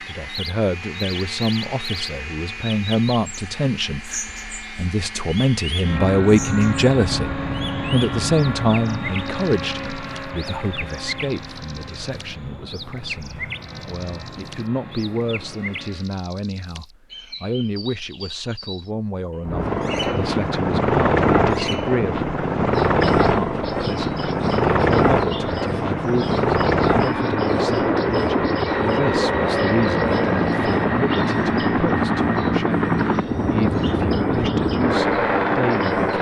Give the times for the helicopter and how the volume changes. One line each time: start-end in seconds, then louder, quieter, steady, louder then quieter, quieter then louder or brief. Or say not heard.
0.0-16.1 louder then quieter
19.4-36.1 steady.